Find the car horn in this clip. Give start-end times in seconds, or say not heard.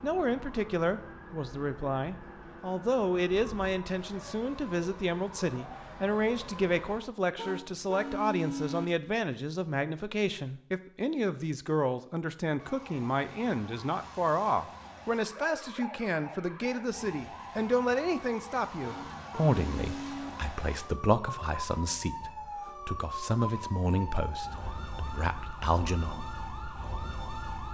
7.3-8.9, 18.8-20.3.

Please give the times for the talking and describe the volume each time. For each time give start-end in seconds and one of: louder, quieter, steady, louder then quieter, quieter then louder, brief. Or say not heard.
0.0-26.2 steady.